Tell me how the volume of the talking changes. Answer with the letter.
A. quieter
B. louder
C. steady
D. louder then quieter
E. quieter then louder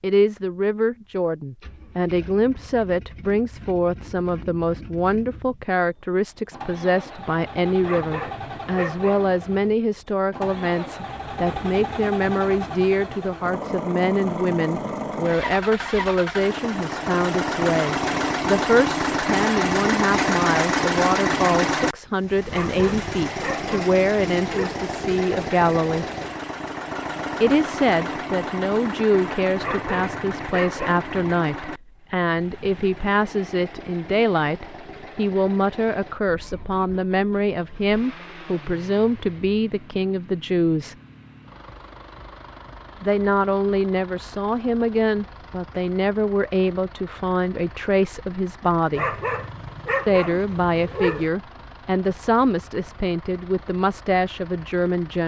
C.